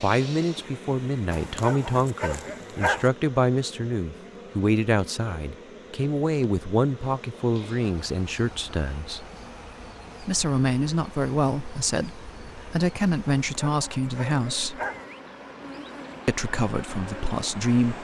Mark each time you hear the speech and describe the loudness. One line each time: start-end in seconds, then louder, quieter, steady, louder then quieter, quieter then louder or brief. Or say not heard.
0.0-9.2 steady
10.2-14.8 steady
16.2-17.9 brief.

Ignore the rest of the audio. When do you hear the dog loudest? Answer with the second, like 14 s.
3 s.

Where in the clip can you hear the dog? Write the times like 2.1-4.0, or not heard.
1.3-3.1, 13.4-15.1.